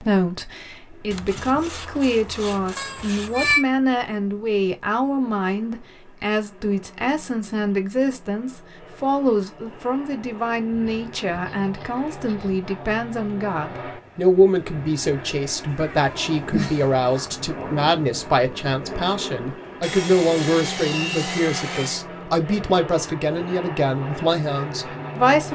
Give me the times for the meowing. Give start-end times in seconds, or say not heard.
2.8-3.6, 15.8-17.2.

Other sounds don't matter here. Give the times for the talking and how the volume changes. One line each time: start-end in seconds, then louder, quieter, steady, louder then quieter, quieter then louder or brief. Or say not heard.
0.0-25.4 steady.